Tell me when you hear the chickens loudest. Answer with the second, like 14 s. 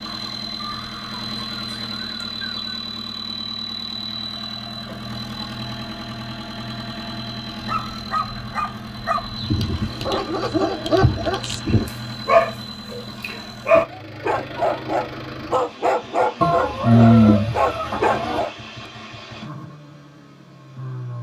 17 s.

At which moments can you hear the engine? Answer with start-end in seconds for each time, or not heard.
0.0-21.1.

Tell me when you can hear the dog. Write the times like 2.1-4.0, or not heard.
7.7-18.5.